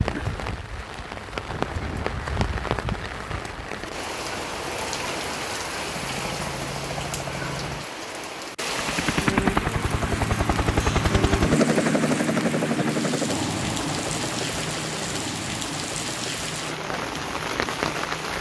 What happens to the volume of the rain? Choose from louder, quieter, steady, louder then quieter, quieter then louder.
steady.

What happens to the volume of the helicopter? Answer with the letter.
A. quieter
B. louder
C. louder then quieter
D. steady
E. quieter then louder
C.